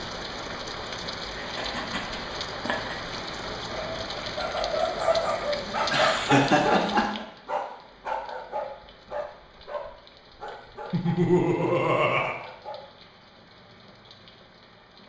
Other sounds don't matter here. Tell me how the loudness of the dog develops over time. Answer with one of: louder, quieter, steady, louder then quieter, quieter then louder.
quieter.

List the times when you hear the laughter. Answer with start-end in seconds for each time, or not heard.
1.4-3.0, 5.8-7.2, 10.9-12.3.